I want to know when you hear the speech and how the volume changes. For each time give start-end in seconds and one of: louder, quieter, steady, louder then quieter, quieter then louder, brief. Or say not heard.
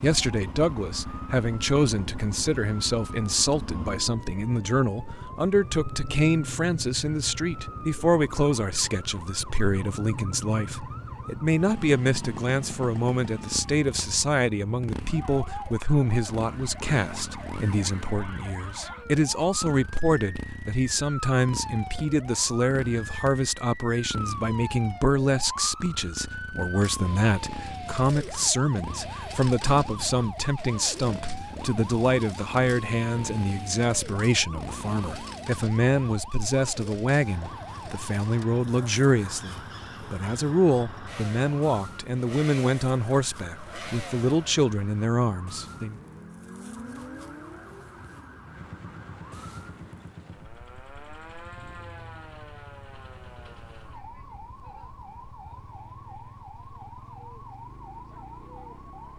0.0-46.0 steady.